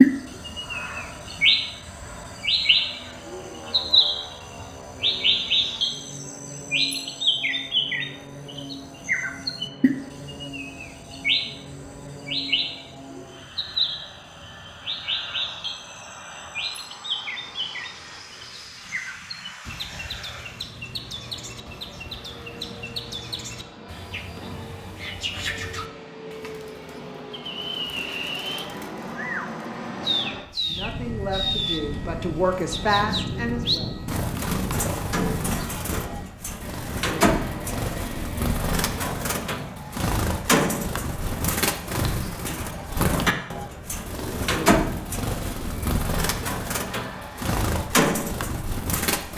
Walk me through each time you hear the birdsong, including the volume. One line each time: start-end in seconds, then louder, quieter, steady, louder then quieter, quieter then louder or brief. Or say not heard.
0.0-49.3 quieter then louder.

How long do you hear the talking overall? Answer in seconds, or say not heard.
3 s.